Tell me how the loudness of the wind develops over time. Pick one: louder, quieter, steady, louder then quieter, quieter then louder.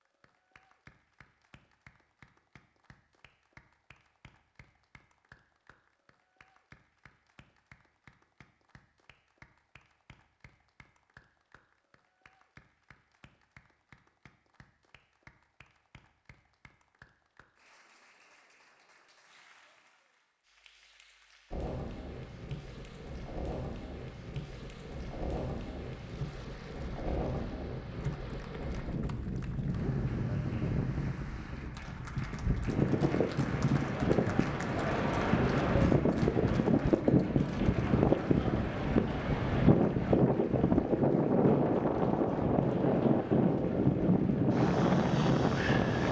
louder.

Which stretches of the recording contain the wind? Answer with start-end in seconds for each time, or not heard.
21.5-46.0.